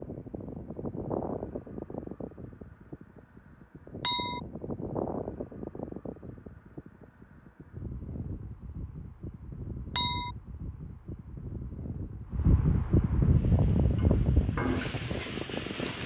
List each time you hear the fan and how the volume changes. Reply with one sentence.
You can hear the fan from 0.0 to 16.0 s, getting quieter then louder.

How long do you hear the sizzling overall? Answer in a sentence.
You can hear the sizzling for 3 seconds altogether.